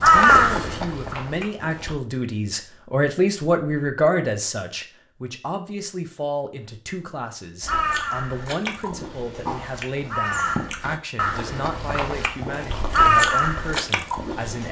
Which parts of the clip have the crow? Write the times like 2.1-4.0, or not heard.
0.0-1.9, 7.6-14.6.